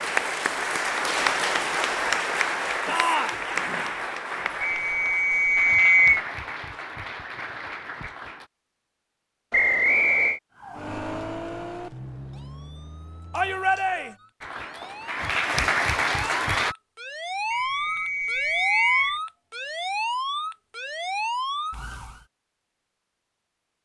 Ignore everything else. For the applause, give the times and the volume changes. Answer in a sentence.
You can hear the applause from 0.0 to 8.5 s, getting quieter; and briefly from 14.4 to 16.8 s.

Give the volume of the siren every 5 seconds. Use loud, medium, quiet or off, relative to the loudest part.
off, off, medium, loud, loud.